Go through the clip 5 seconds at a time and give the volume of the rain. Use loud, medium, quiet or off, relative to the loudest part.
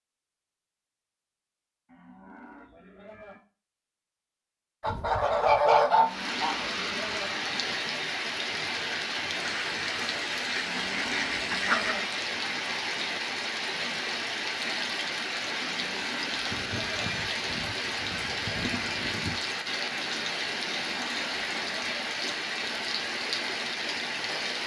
off, loud, loud, loud, loud.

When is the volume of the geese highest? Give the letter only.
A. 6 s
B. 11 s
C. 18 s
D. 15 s
A.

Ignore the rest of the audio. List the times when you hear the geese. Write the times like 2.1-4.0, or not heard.
4.8-6.5, 9.4-11.9, 16.5-19.4.